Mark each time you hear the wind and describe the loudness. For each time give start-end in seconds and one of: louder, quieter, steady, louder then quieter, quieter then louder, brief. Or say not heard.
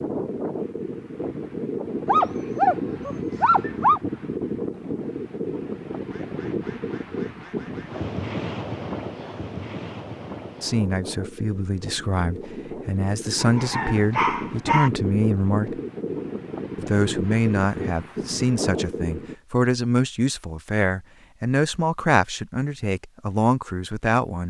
0.0-19.4 steady.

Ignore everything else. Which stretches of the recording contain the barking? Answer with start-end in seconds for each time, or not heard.
2.0-4.0, 13.3-14.9.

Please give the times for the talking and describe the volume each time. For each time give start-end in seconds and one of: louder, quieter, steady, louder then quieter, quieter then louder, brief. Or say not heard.
10.6-15.8 louder
16.8-24.4 steady.